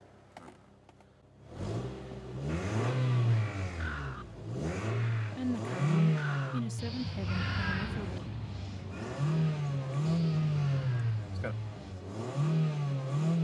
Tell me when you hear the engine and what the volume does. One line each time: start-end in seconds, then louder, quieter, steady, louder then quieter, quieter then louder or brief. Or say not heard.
0.0-13.4 louder.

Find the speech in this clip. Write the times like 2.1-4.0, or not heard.
5.3-8.2.